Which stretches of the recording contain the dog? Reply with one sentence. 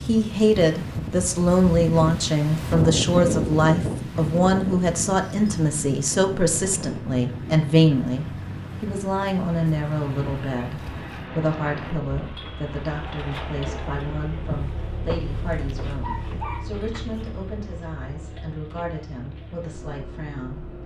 The dog can be heard from 16.0 to 17.2 s.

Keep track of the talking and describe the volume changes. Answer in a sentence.
The loudness of the talking goes down.